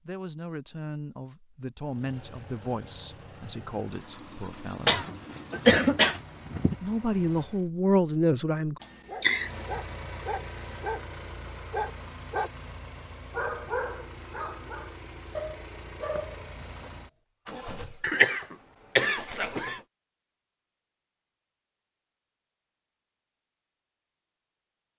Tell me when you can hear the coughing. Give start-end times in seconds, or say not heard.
4.8-6.8, 8.8-9.5, 18.0-19.8.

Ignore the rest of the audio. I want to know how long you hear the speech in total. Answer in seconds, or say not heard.
7 s.